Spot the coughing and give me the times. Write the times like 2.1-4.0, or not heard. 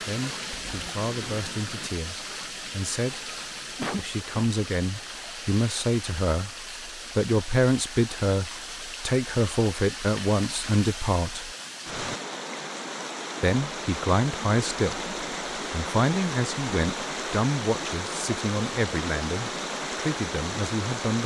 3.8-4.5.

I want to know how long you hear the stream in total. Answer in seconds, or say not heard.
21 s.